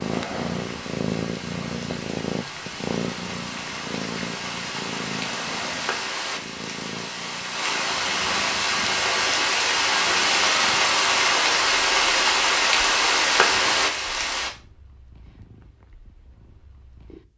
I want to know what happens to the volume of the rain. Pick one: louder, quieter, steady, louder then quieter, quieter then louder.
louder.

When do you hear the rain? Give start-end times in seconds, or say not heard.
0.0-14.5.